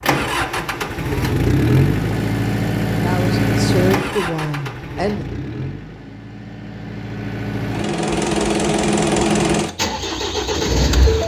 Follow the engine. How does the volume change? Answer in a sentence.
The volume of the engine goes down, then up.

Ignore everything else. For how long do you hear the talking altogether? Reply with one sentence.
The talking can be heard for 2 seconds in total.